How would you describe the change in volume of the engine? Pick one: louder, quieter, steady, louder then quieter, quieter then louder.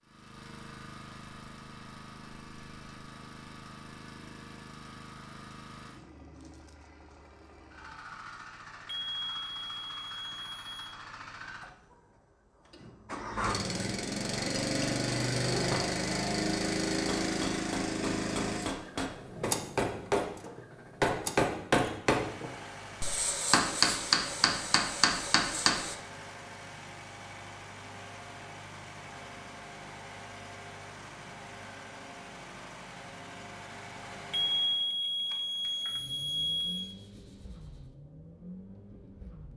louder then quieter.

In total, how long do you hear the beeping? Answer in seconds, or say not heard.
5 s.